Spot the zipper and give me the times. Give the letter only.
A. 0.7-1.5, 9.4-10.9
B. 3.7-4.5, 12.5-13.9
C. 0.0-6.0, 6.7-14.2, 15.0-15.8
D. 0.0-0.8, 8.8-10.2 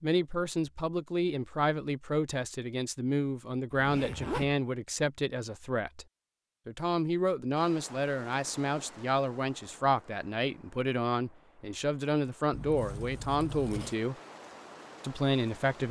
B.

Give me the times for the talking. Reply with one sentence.
The talking can be heard from 0.0 to 6.0 s, from 6.7 to 14.2 s and from 15.0 to 15.8 s.